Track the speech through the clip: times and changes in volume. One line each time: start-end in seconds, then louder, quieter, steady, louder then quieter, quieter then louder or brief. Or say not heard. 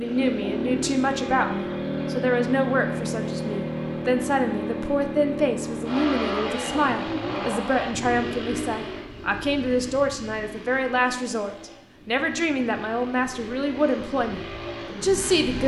0.0-15.6 steady.